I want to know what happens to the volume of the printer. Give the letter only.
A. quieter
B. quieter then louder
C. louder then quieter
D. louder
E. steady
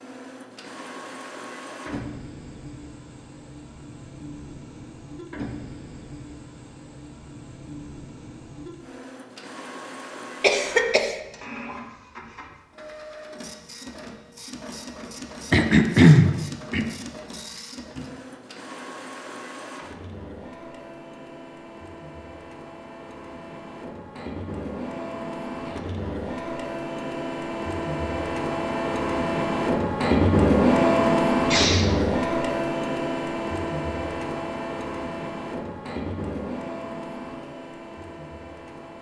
D.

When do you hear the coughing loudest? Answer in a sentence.
The volume of the coughing peaks at 16 seconds.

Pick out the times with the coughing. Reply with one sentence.
The coughing can be heard from 10.4 to 11.2 s, from 15.5 to 16.9 s and from 31.4 to 31.9 s.